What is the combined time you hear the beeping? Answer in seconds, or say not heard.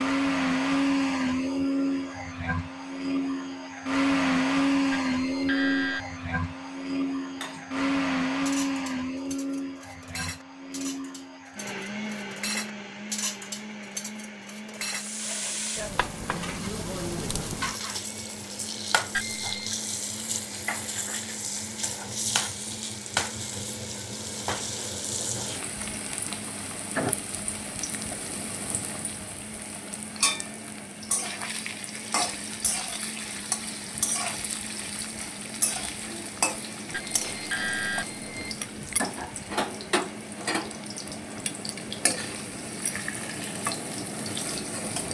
4 s.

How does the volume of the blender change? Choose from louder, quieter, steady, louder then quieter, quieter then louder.
quieter.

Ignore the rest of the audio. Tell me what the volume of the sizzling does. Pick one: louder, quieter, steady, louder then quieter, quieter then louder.
steady.